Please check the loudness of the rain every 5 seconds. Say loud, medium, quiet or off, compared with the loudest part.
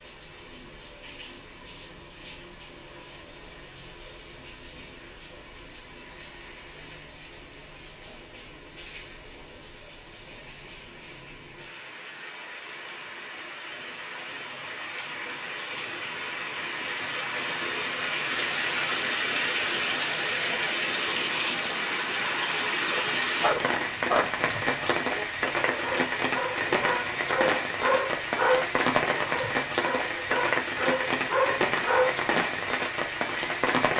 quiet, quiet, quiet, loud, loud, loud, loud.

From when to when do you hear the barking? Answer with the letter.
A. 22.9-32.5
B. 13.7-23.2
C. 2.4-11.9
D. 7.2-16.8
A.